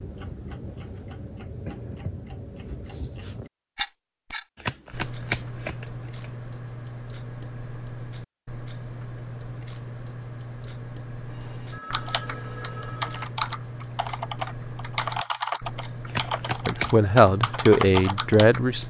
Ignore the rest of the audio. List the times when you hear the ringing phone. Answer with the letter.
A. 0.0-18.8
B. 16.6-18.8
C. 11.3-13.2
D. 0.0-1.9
C.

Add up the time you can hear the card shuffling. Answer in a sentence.
You can hear the card shuffling for 3 seconds altogether.